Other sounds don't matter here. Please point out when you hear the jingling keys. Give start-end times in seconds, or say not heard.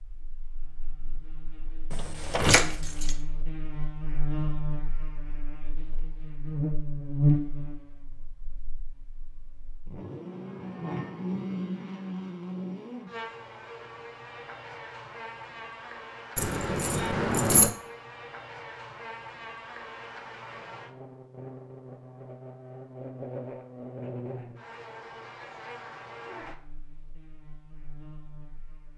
1.9-3.1, 16.4-17.7.